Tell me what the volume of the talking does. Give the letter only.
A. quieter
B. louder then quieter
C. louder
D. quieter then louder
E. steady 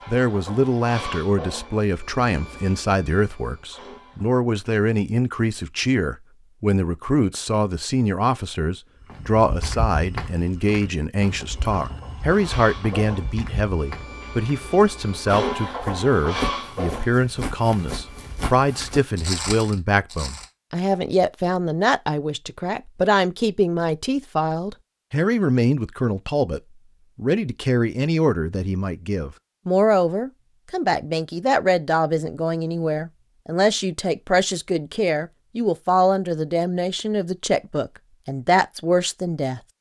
E.